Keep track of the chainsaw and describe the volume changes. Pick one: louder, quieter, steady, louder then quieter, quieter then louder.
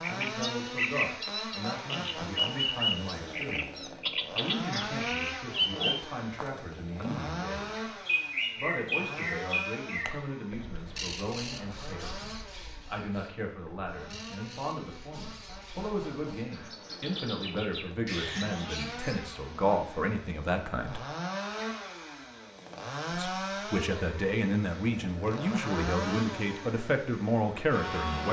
quieter then louder.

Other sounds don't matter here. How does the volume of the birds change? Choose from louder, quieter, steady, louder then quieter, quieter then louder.
quieter then louder.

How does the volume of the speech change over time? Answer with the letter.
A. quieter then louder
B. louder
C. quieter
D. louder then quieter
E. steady
B.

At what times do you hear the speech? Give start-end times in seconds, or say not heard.
0.1-7.9, 8.6-21.1, 23.1-28.2.